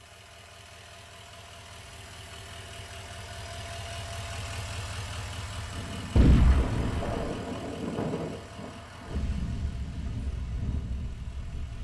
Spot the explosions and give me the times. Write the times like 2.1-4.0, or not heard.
6.2-7.4.